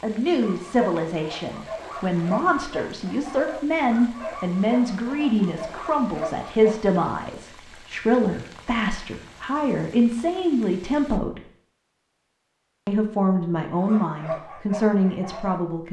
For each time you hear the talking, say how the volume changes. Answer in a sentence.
You can hear the talking from 0.0 to 11.4 s, at a steady volume; and briefly from 12.8 to 15.8 s.